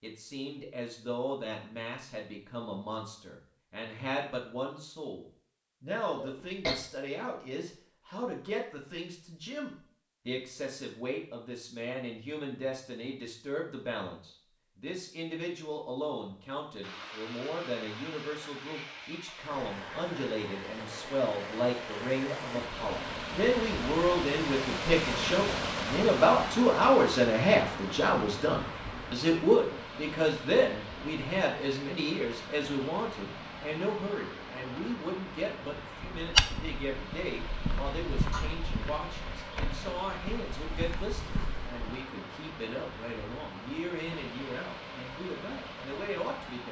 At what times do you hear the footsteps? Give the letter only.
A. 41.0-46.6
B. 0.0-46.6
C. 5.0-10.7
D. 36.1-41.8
D.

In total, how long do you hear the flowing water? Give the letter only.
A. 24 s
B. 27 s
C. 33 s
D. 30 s
D.